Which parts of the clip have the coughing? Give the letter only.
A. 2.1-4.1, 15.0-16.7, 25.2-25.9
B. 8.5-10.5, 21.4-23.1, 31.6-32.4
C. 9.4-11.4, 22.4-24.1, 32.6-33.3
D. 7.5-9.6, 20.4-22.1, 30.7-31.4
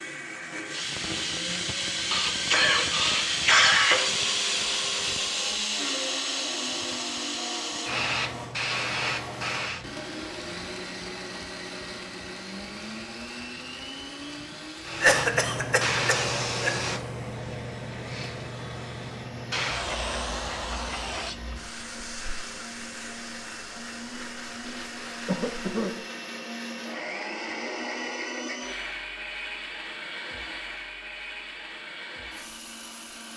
A.